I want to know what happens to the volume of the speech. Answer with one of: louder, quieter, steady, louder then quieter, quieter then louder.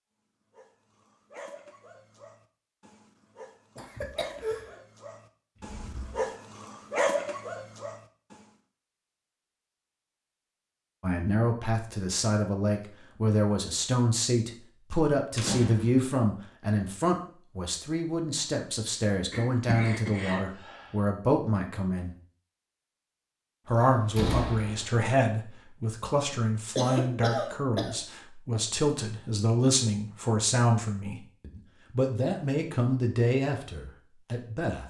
steady.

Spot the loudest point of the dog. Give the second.
7 s.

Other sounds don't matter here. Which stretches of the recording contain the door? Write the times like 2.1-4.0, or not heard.
5.5-6.2, 15.3-16.1, 23.6-24.9.